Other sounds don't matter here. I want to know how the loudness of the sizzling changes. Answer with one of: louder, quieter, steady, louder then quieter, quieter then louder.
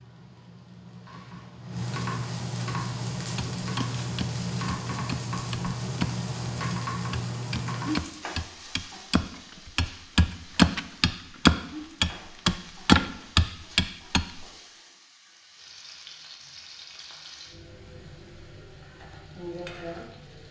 quieter then louder.